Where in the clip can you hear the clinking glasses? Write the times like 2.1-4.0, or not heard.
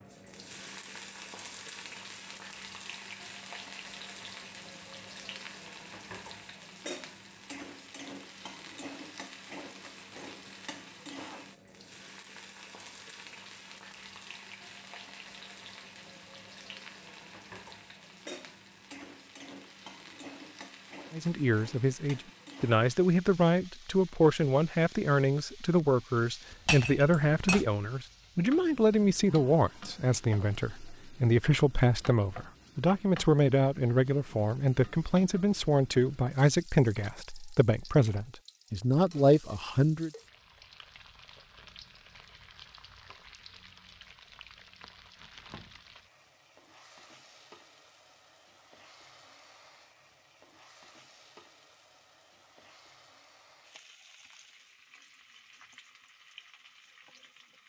26.6-27.6.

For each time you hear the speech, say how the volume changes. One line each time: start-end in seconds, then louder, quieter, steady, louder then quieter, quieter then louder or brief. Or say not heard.
21.1-40.1 steady.